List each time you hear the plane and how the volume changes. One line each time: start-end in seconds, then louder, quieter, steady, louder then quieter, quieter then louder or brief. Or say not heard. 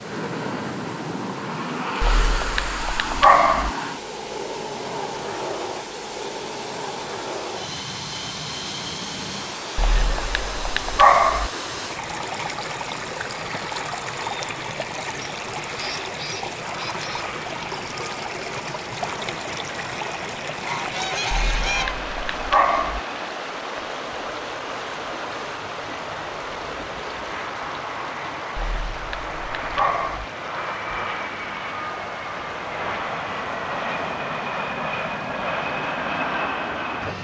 0.0-37.1 quieter then louder.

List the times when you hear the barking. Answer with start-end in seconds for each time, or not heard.
2.0-3.7, 9.8-11.5, 21.3-23.0, 28.6-30.2.